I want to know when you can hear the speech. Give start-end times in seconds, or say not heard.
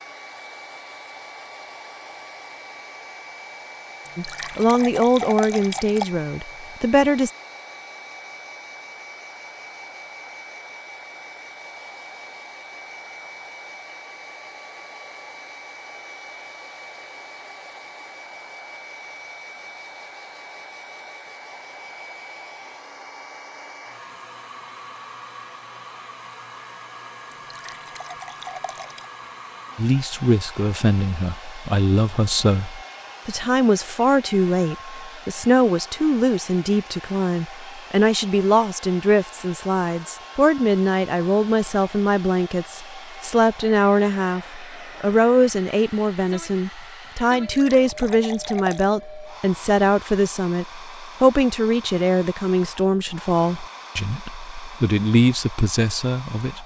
4.2-7.3, 29.8-56.6.